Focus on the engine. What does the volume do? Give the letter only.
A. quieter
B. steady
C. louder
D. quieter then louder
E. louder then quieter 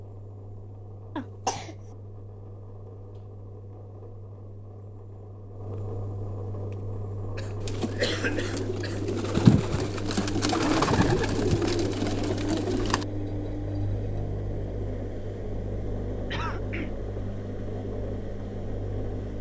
C.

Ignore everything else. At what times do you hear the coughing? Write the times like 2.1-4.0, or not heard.
1.1-1.8, 7.3-9.0, 16.3-16.9.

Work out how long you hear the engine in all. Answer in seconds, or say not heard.
19 s.